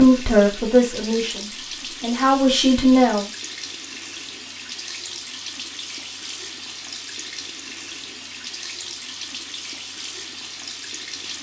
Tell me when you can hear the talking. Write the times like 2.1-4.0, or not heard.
0.0-3.2.